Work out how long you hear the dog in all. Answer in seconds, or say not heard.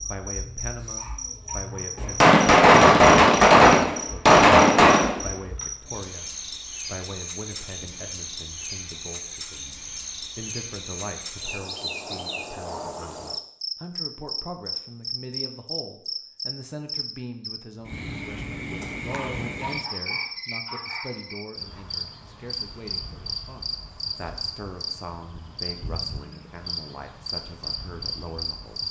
4 s.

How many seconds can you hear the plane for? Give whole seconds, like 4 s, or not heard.
not heard.